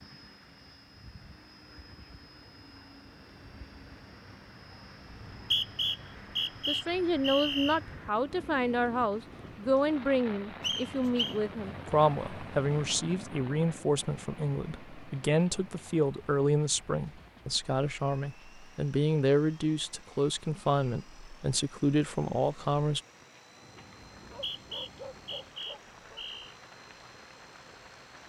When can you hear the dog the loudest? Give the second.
25 s.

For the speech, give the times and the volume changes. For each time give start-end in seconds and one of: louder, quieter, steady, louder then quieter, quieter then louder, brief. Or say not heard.
6.7-23.0 steady.